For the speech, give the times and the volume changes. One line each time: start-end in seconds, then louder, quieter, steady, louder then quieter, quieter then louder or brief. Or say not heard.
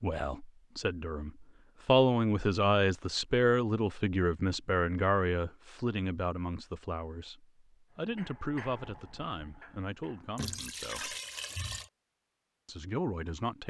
0.0-11.2 quieter
12.7-13.6 brief.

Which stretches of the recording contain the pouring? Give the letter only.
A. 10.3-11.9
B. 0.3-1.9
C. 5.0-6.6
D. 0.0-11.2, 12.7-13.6
A.